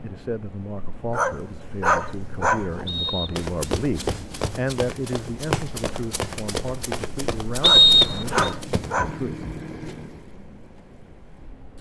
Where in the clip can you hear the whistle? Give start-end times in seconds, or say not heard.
2.9-3.5, 7.6-8.5.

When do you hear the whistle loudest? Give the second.
8 s.